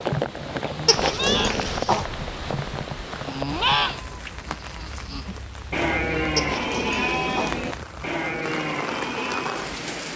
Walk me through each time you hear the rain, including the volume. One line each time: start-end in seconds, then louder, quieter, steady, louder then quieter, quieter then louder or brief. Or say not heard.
0.0-10.1 quieter then louder.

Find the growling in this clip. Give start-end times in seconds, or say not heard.
0.8-2.0, 6.3-7.6.